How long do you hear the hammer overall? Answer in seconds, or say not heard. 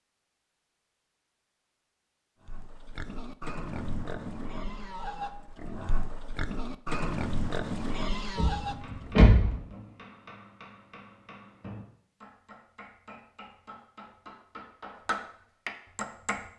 8 s.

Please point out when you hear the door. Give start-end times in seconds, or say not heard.
8.3-9.6.